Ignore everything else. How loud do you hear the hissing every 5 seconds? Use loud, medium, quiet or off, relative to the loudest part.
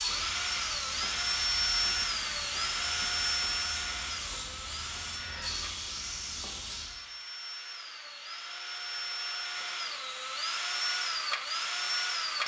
loud, loud, off.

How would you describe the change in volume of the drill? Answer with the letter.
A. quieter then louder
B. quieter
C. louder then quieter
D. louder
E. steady
A.